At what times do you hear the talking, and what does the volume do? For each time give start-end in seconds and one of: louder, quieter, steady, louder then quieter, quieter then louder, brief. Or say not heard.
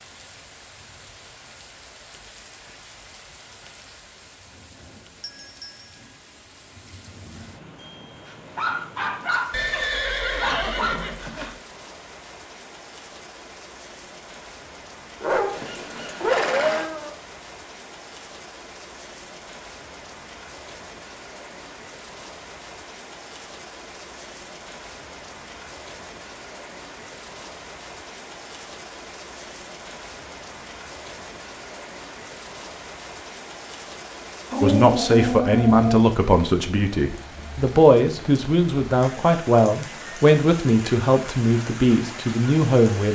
34.6-43.1 steady.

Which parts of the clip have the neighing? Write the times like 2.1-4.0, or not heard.
9.5-11.6, 15.5-16.9, 39.9-40.4.